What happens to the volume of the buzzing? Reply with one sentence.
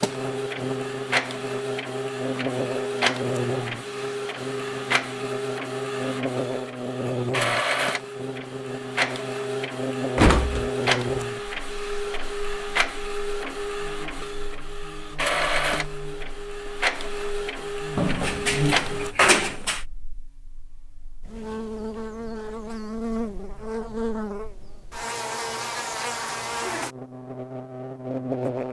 The volume of the buzzing goes down, then up.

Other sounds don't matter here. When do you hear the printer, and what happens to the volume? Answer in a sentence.
You can hear the printer from 0.0 to 19.1 s, at a steady volume.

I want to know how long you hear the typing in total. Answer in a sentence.
You can't hear the typing here.